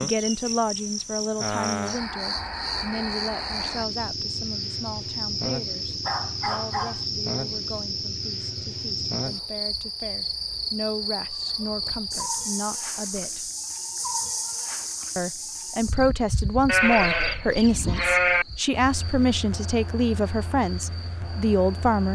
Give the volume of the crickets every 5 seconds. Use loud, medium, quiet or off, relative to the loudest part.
loud, loud, loud, medium, medium.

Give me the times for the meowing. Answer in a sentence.
You can't hear the meowing here.